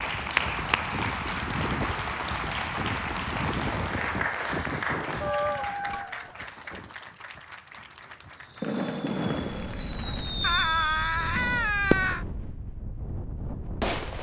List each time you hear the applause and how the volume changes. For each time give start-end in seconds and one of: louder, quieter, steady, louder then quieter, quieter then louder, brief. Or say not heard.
0.0-10.6 quieter.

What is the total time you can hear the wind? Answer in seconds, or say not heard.
14 s.